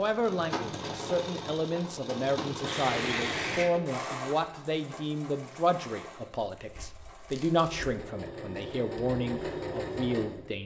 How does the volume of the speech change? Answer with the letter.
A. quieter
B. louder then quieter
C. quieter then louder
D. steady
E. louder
D.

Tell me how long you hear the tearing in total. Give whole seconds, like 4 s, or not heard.
3 s.